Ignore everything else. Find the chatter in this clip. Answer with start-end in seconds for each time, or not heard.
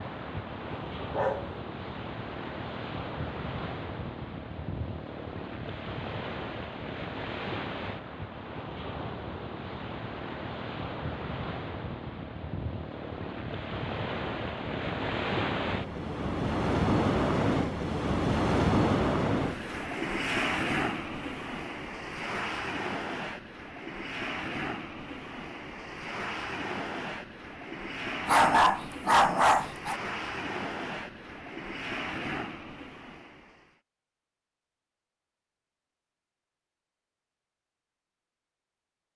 not heard.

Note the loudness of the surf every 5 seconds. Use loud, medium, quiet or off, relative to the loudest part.
medium, medium, medium, loud, medium, medium, medium, off.